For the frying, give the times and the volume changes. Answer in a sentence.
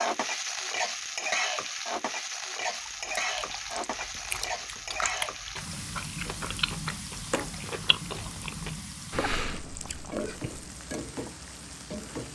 The frying can be heard from 0.0 to 12.3 s, getting quieter.